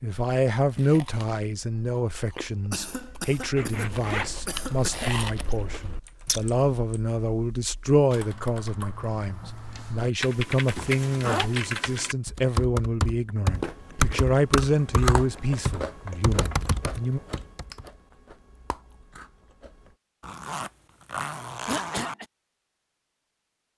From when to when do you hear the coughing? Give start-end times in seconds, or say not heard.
2.7-5.2, 21.6-22.2.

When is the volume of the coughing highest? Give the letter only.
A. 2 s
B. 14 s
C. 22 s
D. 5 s
C.